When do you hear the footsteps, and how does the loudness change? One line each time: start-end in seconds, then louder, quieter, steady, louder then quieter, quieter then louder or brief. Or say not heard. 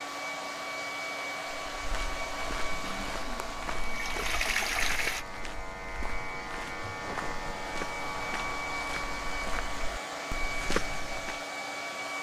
1.8-11.4 louder.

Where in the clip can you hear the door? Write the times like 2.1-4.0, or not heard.
not heard.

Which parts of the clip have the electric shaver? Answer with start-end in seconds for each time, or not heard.
0.0-12.1.